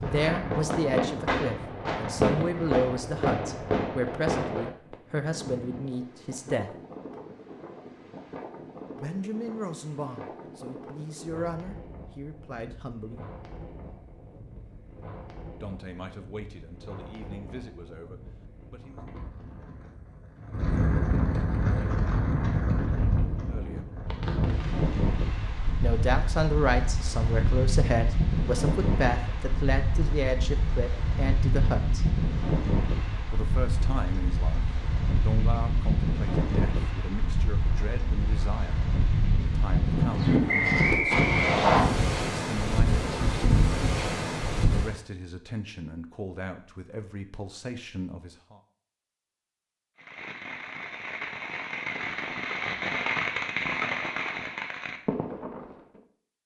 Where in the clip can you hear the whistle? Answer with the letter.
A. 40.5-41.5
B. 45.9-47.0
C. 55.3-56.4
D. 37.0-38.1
A.